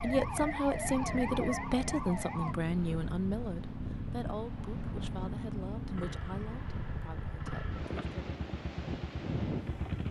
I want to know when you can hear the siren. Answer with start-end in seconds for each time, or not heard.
0.0-2.5.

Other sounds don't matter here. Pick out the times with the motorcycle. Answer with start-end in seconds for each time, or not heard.
0.1-10.0.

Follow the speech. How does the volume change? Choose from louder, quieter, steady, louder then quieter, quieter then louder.
quieter.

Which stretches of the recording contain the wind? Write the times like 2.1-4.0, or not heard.
0.0-10.0.